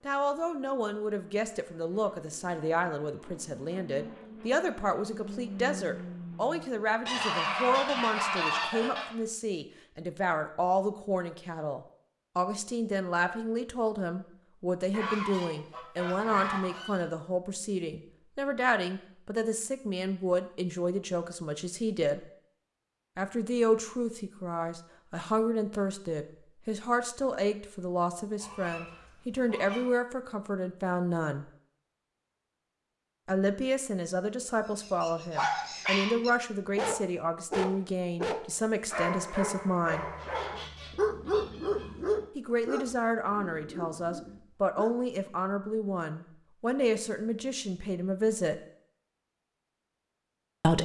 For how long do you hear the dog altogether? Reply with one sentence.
You can hear the dog for 10 seconds altogether.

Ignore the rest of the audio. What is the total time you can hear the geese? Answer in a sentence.
You can hear the geese for 8 seconds altogether.